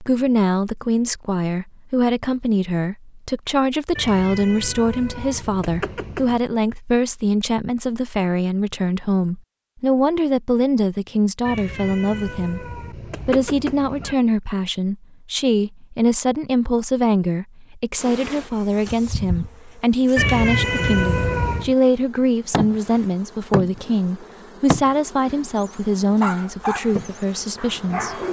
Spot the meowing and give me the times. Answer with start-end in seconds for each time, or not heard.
4.0-6.4, 11.4-14.2, 20.1-21.8.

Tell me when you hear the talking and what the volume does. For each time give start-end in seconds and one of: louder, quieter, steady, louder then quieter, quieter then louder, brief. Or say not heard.
0.0-28.2 steady.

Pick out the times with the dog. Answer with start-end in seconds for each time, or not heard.
25.6-28.2.